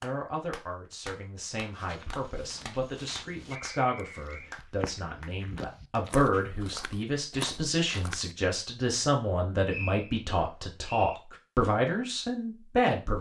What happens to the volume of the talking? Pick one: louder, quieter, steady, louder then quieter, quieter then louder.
louder.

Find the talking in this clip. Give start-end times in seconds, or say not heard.
0.0-13.1.